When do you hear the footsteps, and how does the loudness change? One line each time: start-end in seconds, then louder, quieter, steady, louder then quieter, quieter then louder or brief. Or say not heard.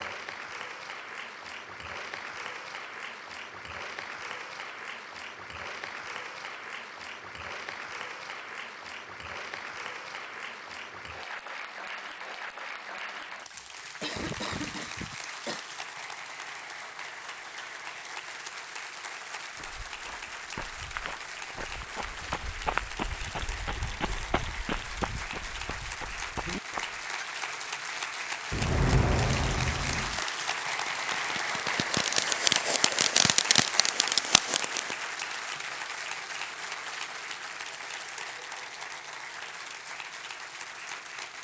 19.6-27.1 louder then quieter.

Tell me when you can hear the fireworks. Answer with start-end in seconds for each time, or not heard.
28.5-35.0.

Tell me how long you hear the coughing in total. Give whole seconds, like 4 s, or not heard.
2 s.